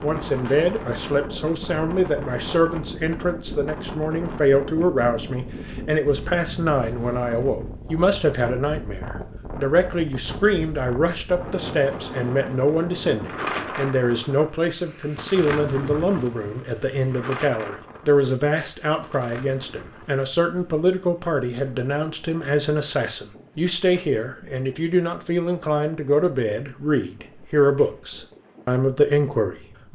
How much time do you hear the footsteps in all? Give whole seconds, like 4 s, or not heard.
not heard.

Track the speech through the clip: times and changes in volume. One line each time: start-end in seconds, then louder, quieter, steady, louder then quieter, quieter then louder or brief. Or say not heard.
0.0-29.9 steady.